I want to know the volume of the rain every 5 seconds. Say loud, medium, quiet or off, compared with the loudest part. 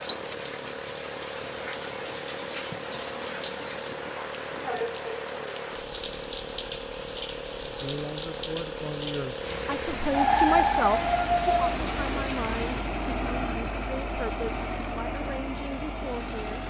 loud, loud, loud, off.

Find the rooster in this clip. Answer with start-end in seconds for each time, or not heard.
10.1-11.8.